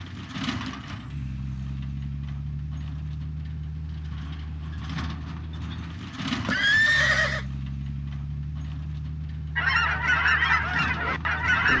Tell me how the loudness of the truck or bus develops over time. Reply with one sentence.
The volume of the truck or bus stays about the same.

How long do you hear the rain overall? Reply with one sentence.
You can't hear the rain here.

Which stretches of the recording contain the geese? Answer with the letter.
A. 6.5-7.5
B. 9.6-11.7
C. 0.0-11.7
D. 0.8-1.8
B.